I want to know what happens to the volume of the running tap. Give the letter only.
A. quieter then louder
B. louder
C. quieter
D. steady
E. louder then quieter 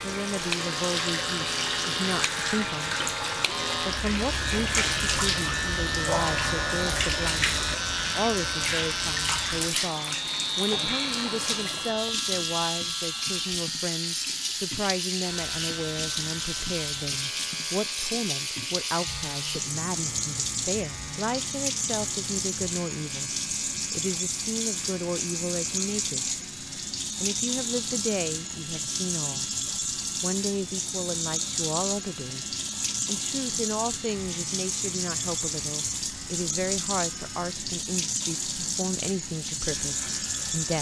D.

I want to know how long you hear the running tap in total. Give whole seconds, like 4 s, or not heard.
41 s.